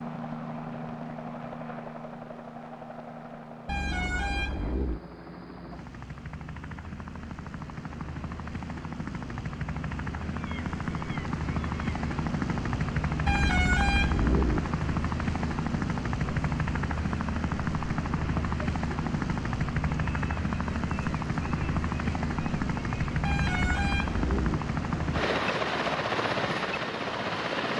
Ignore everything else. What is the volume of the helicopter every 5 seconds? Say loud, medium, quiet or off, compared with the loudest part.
medium, medium, loud, loud, loud, loud.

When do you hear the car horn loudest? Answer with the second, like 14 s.
14 s.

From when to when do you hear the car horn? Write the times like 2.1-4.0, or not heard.
3.6-5.0, 13.2-14.6, 23.2-24.6.